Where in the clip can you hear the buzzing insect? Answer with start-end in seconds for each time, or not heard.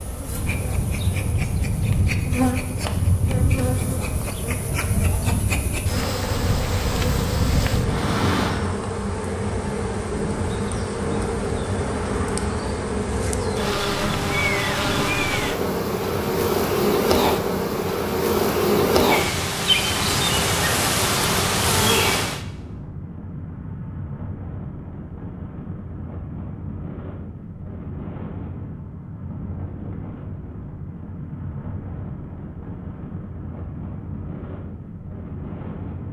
0.0-22.4.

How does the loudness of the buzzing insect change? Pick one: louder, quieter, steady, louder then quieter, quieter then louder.
louder.